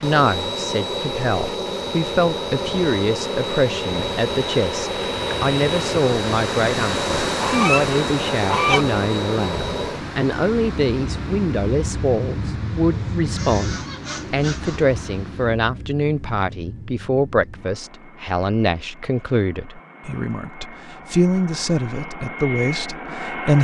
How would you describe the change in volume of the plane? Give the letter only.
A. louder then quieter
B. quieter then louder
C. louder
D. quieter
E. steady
D.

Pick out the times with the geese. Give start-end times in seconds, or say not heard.
7.4-8.8, 12.9-14.8.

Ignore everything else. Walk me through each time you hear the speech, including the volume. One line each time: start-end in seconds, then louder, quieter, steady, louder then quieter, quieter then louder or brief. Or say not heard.
0.0-23.5 steady.